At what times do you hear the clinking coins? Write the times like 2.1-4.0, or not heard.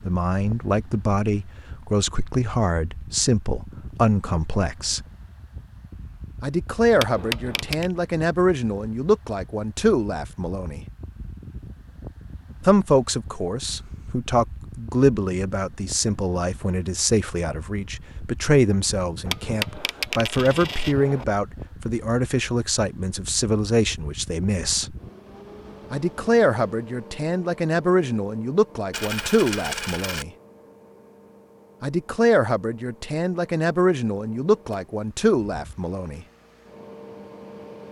7.0-7.9, 19.2-21.2, 28.9-30.2.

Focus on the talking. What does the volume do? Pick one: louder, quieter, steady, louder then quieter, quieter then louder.
steady.